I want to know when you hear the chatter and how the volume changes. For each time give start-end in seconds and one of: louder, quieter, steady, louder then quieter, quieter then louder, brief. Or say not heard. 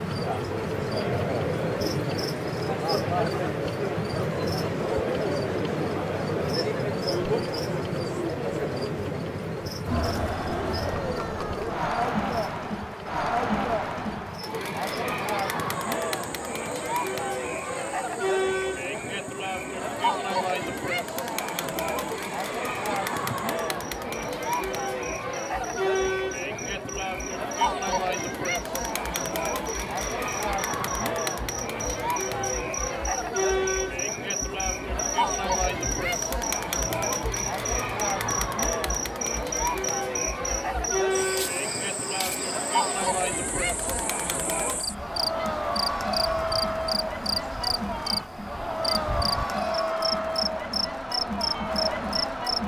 0.0-52.6 steady.